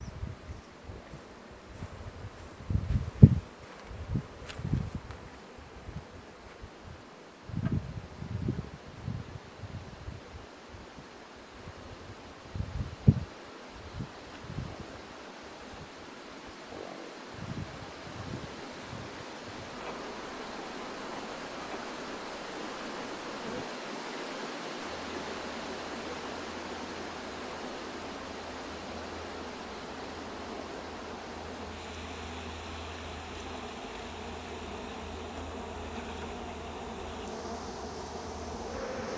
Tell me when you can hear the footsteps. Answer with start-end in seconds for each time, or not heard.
not heard.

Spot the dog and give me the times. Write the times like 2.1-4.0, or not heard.
not heard.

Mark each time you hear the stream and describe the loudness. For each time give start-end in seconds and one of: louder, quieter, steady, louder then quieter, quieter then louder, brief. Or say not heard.
0.0-39.1 louder then quieter.